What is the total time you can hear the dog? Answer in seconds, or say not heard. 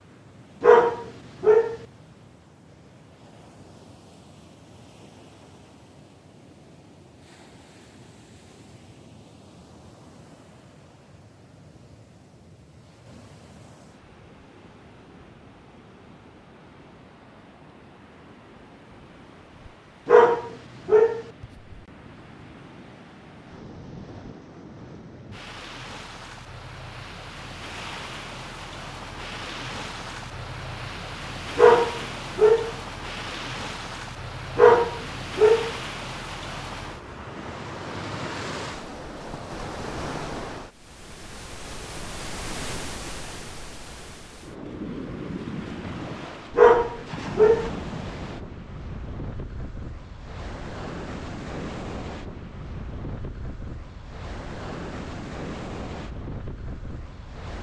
6 s.